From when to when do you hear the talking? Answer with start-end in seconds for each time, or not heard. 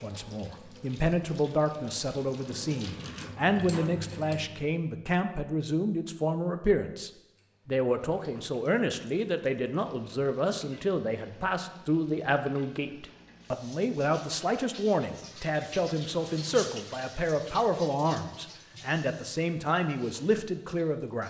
0.0-21.2.